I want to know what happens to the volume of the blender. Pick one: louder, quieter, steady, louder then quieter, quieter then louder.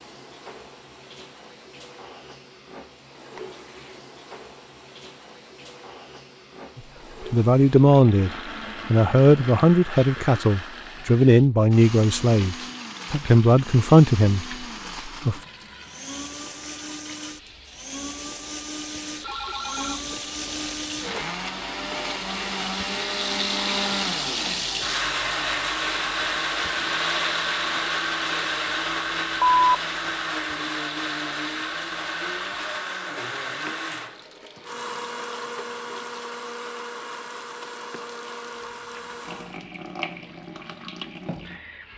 louder then quieter.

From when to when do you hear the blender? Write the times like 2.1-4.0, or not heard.
8.0-39.6.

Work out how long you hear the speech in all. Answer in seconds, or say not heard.
9 s.